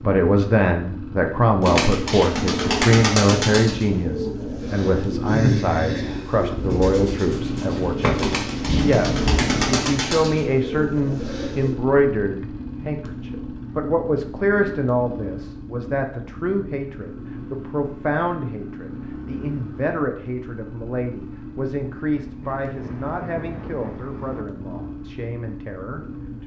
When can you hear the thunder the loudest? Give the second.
9 s.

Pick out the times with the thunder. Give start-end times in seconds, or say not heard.
8.4-9.8, 22.4-24.4.